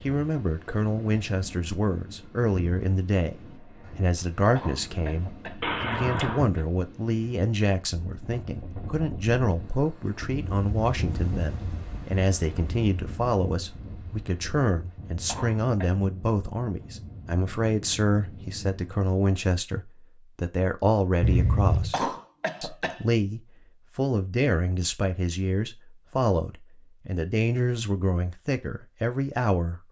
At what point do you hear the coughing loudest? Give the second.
22 s.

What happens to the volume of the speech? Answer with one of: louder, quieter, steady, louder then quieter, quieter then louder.
steady.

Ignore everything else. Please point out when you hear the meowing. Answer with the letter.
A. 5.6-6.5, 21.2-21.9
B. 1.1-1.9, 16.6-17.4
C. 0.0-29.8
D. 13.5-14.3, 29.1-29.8
A.